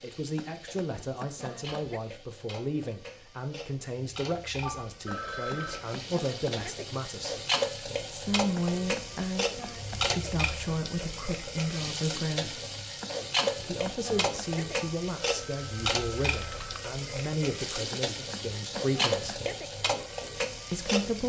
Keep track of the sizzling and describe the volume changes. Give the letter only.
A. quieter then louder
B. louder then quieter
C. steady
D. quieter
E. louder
E.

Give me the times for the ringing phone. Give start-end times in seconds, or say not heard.
4.6-5.8, 14.8-16.8.